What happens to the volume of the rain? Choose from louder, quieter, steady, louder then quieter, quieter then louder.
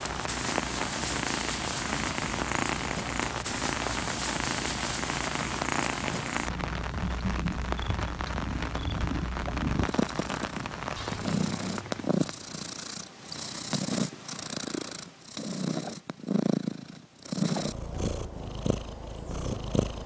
steady.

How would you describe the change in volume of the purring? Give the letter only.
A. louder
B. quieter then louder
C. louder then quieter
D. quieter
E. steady
E.